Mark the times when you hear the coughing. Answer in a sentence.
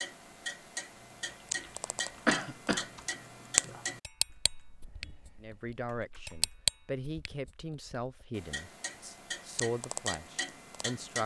The coughing can be heard from 2.2 to 2.9 s.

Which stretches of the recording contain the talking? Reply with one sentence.
The talking can be heard from 5.4 to 11.2 s.